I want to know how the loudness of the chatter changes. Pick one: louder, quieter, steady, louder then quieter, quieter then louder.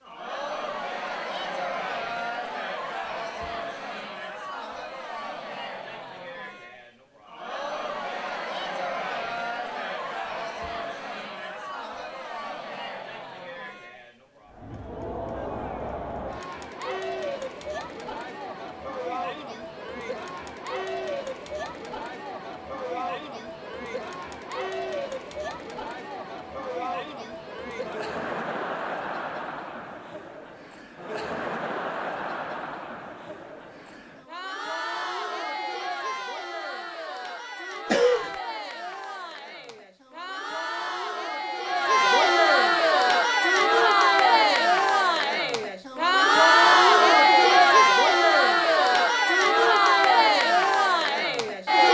louder.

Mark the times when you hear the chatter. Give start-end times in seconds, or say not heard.
0.0-51.9.